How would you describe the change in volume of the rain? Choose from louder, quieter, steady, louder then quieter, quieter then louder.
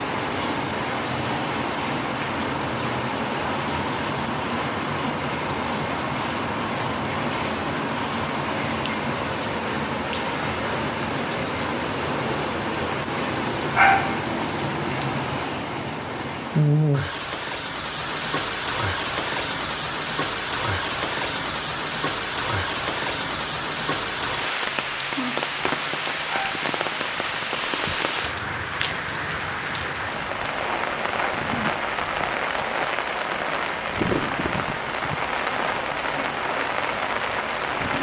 steady.